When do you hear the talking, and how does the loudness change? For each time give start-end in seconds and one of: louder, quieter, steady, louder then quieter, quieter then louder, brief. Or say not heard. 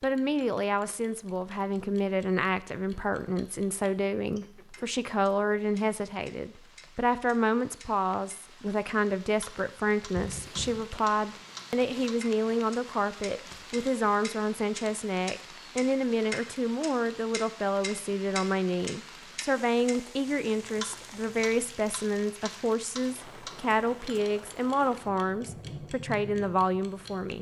0.0-27.3 steady.